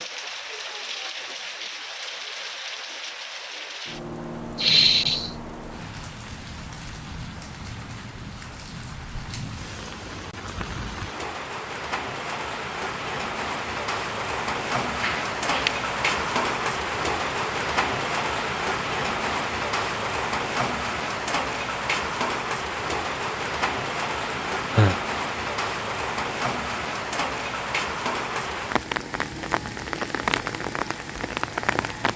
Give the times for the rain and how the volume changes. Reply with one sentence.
The rain can be heard from 0.0 to 32.1 s, getting louder.